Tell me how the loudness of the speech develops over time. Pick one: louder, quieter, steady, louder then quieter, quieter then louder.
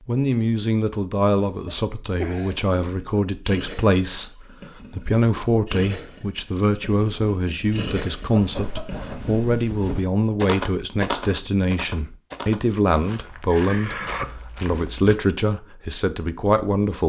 steady.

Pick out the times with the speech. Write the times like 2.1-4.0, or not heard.
0.1-17.0.